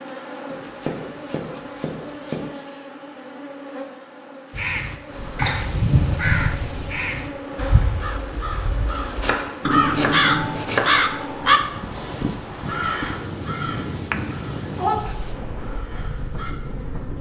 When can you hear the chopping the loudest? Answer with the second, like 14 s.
11 s.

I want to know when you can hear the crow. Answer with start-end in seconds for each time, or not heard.
4.5-15.0, 15.6-16.6.